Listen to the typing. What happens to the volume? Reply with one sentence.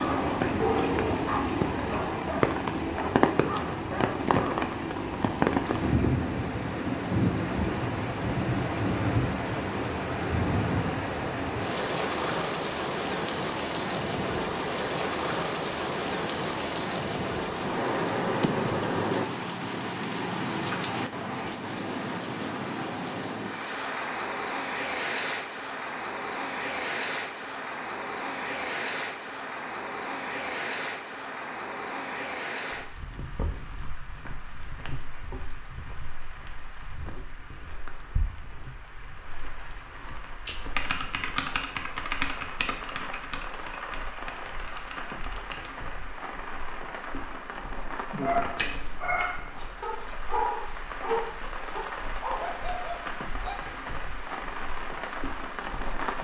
The loudness of the typing goes down.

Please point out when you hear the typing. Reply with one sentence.
You can hear the typing from 40.5 to 45.7 s.